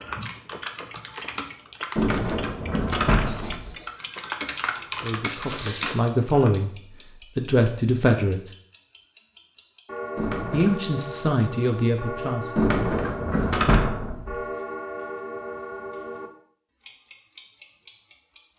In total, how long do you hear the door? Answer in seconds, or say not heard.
4 s.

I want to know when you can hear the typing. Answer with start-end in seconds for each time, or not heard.
0.0-6.6.